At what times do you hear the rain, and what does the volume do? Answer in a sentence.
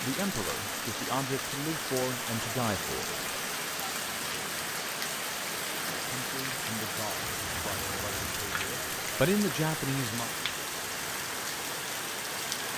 You can hear the rain from 0.0 to 12.7 s, at a steady volume.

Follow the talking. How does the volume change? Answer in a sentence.
The volume of the talking goes down, then up.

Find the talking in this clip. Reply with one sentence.
You can hear the talking from 0.0 to 3.0 s and from 6.0 to 10.3 s.